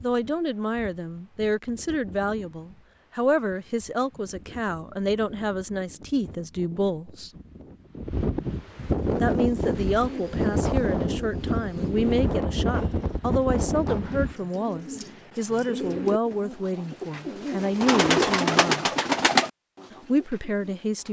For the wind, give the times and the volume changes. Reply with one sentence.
You can hear the wind from 0.0 to 14.3 s, getting louder.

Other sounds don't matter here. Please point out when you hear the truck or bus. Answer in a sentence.
You can't hear the truck or bus here.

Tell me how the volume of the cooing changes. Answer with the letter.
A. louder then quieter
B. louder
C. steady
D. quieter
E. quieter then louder
B.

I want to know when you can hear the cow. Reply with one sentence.
You can't hear the cow here.